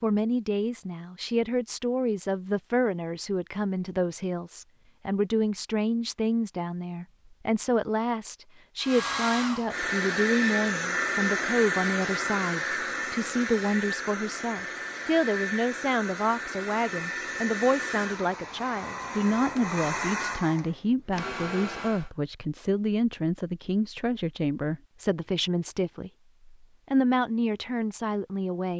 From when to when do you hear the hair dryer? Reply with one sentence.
The hair dryer can be heard from 8.8 to 22.1 s.